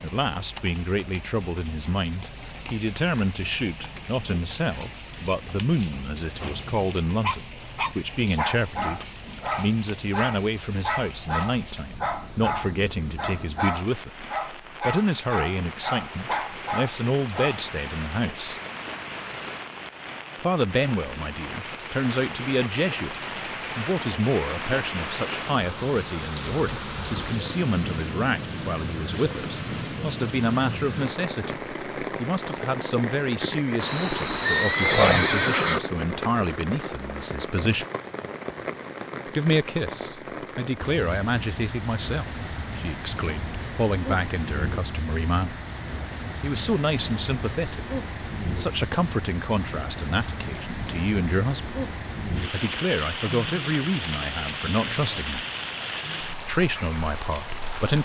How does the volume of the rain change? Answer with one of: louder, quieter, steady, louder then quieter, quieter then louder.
louder.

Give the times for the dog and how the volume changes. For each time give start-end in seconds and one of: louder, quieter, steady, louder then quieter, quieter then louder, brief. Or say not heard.
7.2-17.6 steady.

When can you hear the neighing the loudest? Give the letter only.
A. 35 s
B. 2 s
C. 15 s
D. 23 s
A.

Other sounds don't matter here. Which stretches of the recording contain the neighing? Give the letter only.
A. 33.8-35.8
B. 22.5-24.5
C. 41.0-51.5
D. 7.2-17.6
A.